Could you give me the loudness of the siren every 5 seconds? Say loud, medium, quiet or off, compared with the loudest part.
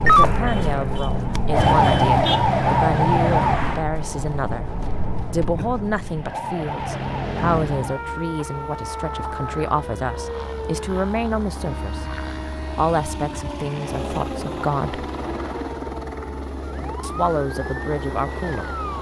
loud, medium, quiet, quiet.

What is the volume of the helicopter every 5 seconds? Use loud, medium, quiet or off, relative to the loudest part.
off, medium, loud, loud.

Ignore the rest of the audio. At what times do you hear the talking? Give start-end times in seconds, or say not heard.
0.0-4.7, 5.3-12.1, 12.8-15.1, 17.0-18.7.